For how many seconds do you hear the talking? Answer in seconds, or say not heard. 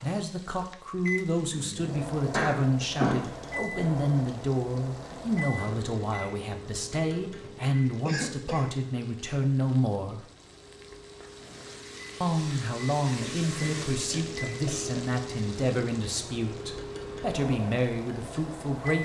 17 s.